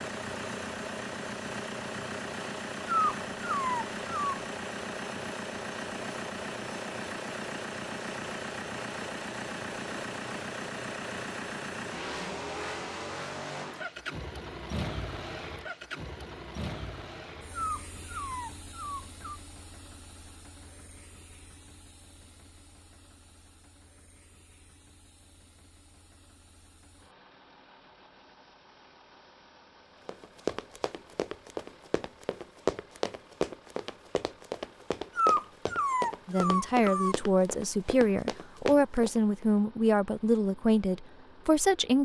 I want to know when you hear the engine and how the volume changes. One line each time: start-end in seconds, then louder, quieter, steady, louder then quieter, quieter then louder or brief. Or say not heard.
0.0-42.0 quieter.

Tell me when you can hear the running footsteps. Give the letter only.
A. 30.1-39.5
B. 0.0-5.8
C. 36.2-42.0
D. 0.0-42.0
A.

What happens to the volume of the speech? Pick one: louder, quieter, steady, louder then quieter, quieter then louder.
steady.